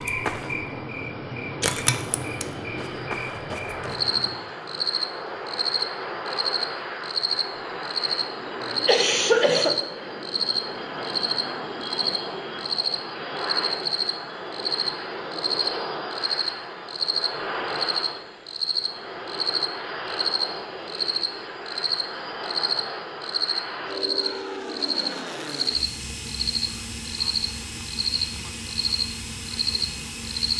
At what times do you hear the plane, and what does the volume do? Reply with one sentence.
You can hear the plane from 0.0 to 30.5 s, at a steady volume.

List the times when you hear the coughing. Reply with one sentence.
You can hear the coughing from 8.6 to 9.8 s.